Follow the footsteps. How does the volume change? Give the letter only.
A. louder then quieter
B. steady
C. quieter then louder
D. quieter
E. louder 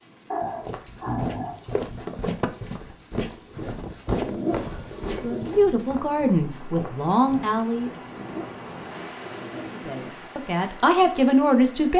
D.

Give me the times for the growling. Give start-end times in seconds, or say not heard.
0.3-1.6, 4.2-5.5, 8.1-10.1.